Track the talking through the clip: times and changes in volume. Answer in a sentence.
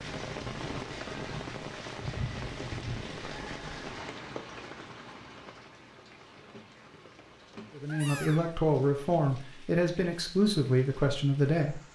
The talking can be heard from 7.8 to 11.9 s, at a steady volume.